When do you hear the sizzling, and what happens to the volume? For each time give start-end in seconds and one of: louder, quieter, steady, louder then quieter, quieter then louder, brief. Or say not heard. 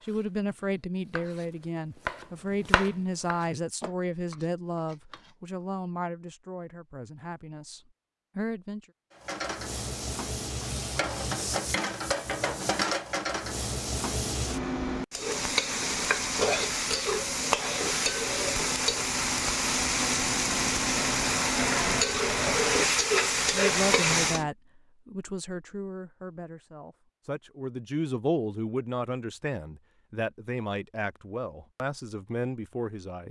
9.2-24.5 louder.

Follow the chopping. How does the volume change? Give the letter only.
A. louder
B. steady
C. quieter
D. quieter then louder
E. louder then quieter
E.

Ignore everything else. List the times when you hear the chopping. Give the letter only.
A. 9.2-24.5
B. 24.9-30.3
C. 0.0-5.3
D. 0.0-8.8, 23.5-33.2
C.